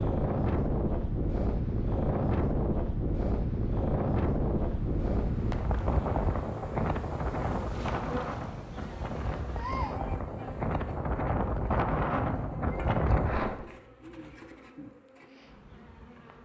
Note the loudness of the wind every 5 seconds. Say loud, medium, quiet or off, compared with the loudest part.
loud, loud, loud, off.